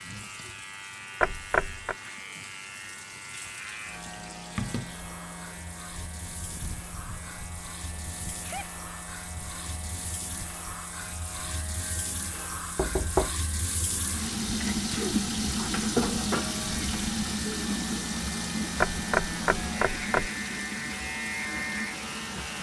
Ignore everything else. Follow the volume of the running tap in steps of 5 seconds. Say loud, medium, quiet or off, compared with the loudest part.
quiet, quiet, medium, loud, medium.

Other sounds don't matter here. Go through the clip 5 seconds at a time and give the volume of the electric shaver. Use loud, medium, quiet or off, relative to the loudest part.
medium, medium, medium, loud, loud.